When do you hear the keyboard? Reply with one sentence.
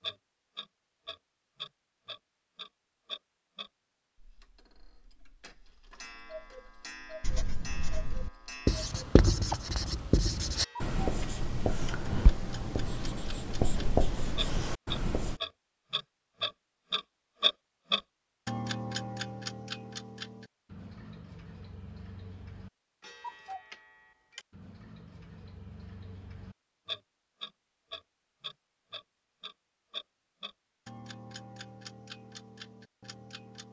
The keyboard can't be heard in this clip.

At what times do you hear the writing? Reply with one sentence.
You can hear the writing from 7.2 to 15.4 s.